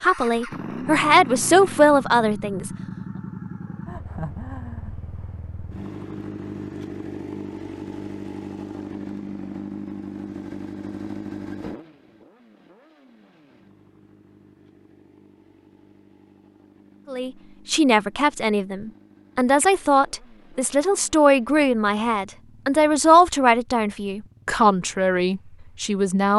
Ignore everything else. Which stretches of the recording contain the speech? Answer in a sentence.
The speech can be heard from 0.0 to 2.7 s and from 17.1 to 26.3 s.